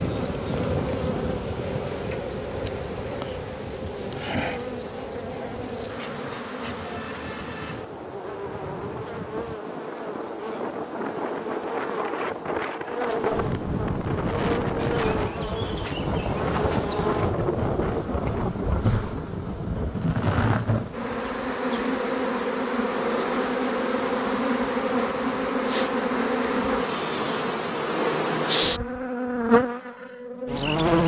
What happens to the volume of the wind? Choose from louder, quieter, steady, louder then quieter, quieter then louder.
quieter then louder.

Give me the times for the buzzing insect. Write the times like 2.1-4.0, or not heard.
0.0-31.0.